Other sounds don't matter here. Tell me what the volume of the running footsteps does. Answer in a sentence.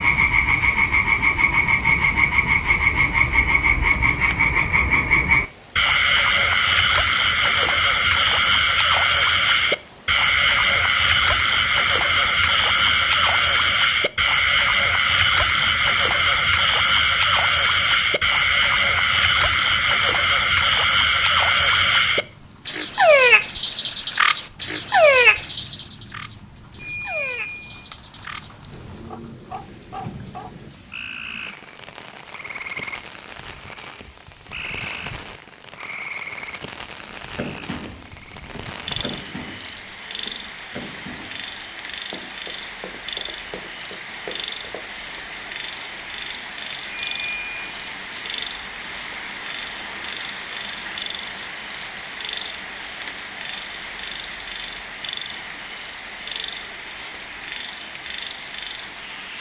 The loudness of the running footsteps stays about the same.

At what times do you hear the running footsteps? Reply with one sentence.
The running footsteps can be heard from 37.1 to 44.9 s.